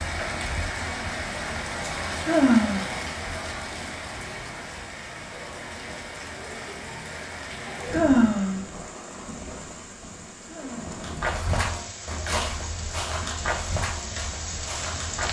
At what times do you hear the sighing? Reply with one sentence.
You can hear the sighing from 2.2 to 2.8 s, from 7.9 to 8.6 s and from 10.4 to 10.9 s.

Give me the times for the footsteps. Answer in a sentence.
The footsteps can be heard from 10.9 to 15.2 s.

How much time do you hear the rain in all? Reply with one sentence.
The rain can be heard for 15 seconds in total.